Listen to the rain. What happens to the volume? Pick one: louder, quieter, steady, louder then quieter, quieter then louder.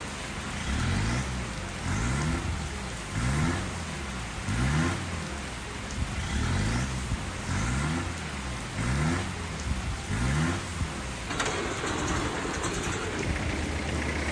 steady.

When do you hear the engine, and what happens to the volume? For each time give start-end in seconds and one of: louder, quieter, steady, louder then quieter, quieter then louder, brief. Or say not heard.
0.0-14.2 steady.